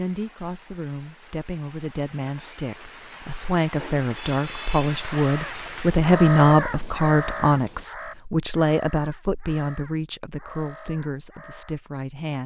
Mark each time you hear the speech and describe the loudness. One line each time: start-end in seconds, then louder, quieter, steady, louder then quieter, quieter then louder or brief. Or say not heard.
0.0-12.4 louder then quieter.